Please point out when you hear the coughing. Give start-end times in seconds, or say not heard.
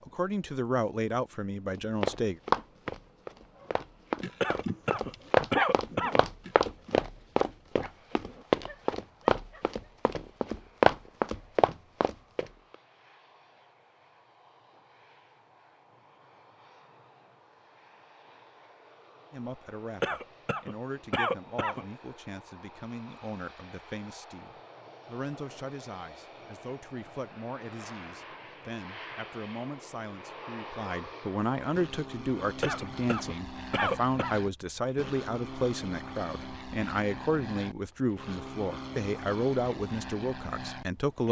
4.4-6.2, 20.0-21.9, 32.6-34.4.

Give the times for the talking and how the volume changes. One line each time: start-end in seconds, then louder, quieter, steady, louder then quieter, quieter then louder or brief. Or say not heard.
0.1-2.4 brief
19.3-41.2 louder.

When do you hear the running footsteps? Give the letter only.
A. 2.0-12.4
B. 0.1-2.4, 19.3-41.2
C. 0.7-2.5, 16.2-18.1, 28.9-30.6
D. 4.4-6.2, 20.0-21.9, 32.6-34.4
A.